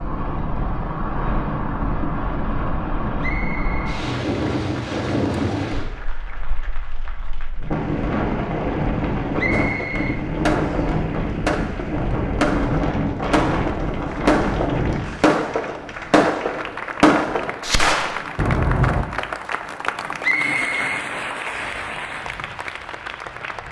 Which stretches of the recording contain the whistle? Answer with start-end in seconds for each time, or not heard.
3.2-3.9, 9.3-10.9, 20.2-21.8.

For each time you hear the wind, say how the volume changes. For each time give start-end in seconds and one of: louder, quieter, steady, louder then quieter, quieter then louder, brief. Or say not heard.
0.0-23.6 quieter.